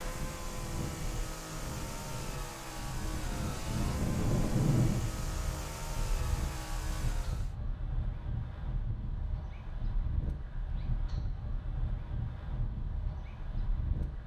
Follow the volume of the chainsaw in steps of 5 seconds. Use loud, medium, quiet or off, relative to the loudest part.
loud, loud, off.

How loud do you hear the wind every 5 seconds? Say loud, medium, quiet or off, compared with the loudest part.
loud, medium, medium.